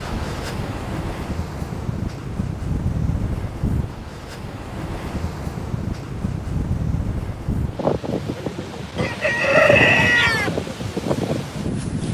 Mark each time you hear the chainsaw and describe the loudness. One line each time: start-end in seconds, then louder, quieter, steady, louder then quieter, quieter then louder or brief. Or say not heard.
not heard.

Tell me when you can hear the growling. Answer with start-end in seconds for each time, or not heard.
not heard.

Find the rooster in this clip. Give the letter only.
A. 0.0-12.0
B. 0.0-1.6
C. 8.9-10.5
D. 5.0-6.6
C.